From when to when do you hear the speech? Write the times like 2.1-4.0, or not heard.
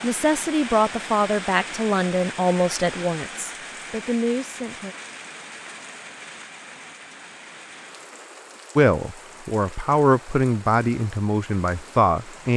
0.0-5.0, 8.8-12.5.